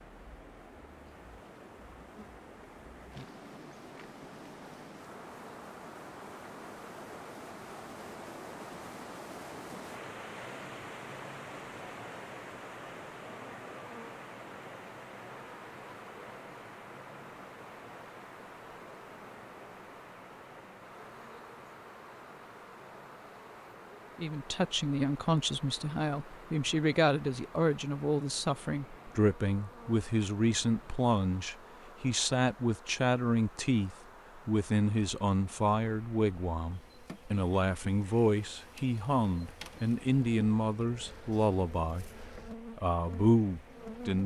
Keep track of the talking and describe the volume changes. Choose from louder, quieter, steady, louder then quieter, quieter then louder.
steady.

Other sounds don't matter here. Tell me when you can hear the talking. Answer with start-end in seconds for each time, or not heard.
24.1-44.2.